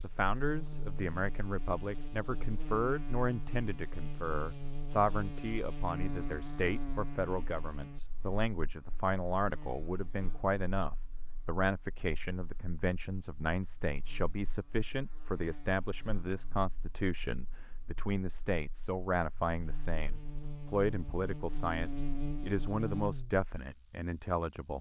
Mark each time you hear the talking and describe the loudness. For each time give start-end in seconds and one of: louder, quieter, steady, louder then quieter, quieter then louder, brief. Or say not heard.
0.0-24.7 steady.